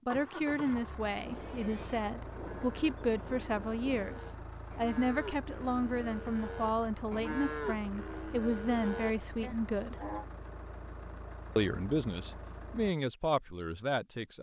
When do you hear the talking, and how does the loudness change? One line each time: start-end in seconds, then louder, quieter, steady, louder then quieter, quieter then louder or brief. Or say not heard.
0.1-9.9 steady
11.6-14.3 brief.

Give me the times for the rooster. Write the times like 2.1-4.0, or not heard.
not heard.